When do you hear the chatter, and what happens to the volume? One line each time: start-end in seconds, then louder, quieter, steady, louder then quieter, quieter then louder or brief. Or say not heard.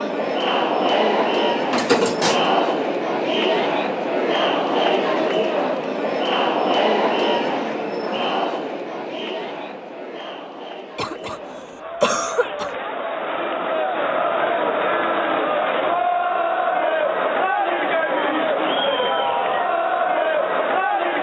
0.0-21.1 quieter then louder.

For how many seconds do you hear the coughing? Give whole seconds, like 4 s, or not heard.
2 s.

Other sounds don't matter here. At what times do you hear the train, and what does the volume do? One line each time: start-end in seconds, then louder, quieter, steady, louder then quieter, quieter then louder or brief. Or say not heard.
not heard.